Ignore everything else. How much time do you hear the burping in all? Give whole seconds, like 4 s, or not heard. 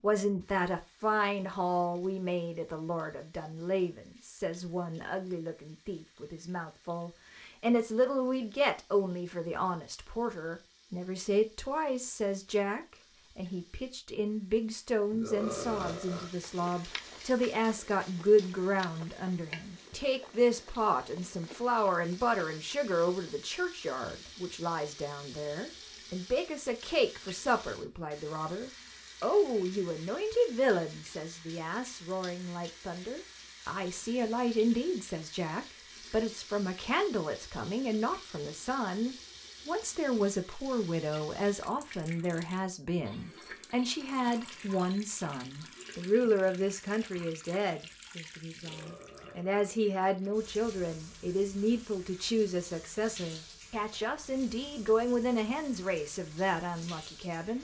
2 s.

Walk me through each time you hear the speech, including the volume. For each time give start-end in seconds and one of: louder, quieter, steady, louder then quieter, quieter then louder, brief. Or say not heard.
0.0-57.5 steady.